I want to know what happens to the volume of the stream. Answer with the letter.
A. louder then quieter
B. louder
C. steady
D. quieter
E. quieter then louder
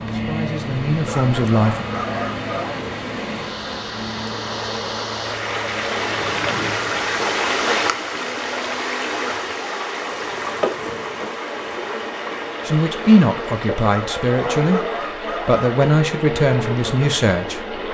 A.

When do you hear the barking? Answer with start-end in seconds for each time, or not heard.
1.1-2.8, 13.8-15.8.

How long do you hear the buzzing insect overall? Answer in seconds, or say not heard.
18 s.